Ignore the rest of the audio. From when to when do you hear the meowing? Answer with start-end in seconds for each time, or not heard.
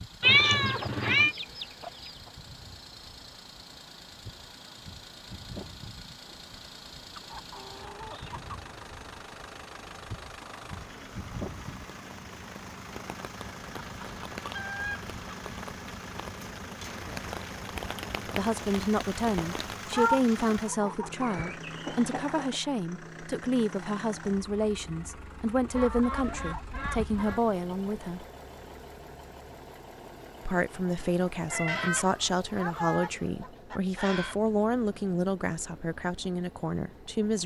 0.2-1.4, 19.4-20.2, 31.0-32.2.